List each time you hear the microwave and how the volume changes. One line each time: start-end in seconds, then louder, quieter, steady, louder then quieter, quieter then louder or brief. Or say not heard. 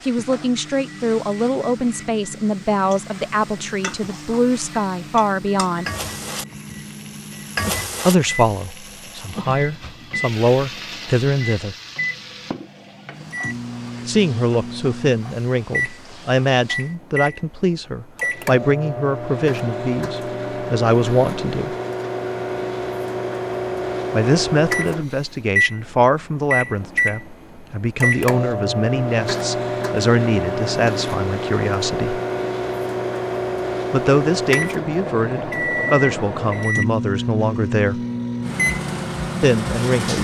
0.0-40.2 louder.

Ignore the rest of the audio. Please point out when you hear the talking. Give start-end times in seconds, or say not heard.
0.1-5.8, 8.1-11.8, 14.1-21.8, 24.1-32.2, 33.9-38.0, 39.4-40.2.